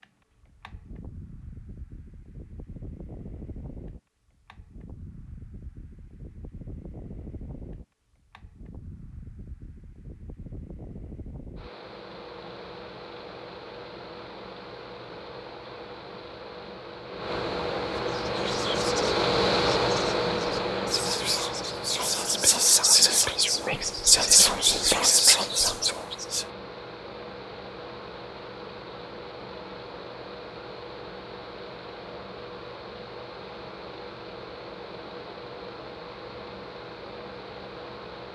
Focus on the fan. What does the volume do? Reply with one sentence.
The loudness of the fan goes up, then down.